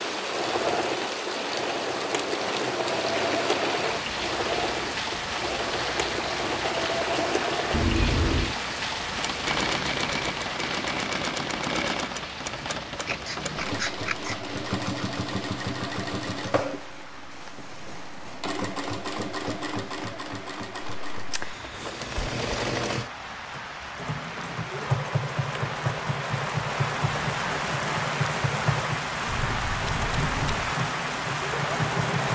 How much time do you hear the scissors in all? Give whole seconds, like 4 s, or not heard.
4 s.